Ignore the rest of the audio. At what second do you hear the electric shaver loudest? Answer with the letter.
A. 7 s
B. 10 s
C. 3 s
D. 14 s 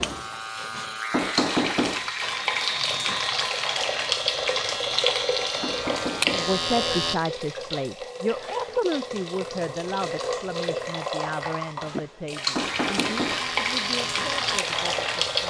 A.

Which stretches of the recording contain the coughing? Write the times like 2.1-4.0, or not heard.
not heard.